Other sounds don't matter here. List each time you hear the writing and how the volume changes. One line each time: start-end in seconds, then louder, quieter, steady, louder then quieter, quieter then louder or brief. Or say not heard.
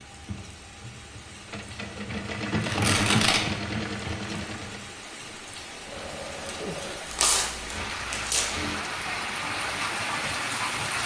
not heard.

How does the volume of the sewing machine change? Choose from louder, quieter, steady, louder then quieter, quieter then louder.
louder then quieter.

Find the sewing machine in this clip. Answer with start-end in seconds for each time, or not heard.
0.0-8.8.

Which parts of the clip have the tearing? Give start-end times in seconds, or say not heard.
2.6-3.4, 7.1-8.6.